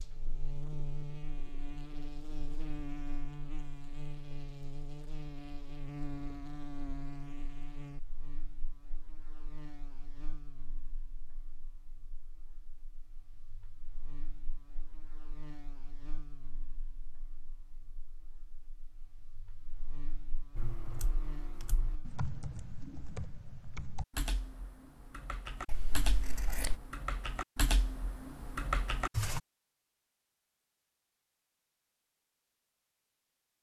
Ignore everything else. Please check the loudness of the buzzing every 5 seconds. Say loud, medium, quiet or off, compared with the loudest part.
loud, loud, quiet, quiet, medium, off, off.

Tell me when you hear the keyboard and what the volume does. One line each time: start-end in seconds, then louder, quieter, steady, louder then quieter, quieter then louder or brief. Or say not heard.
20.6-29.4 louder.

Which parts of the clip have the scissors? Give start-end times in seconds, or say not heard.
25.6-26.8.